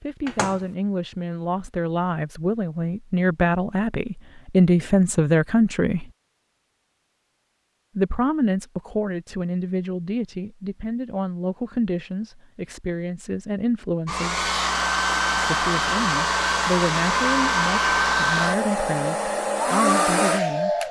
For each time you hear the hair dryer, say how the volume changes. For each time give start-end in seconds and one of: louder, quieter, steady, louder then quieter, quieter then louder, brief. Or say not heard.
14.1-20.8 steady.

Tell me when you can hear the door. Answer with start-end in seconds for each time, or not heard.
0.2-0.7.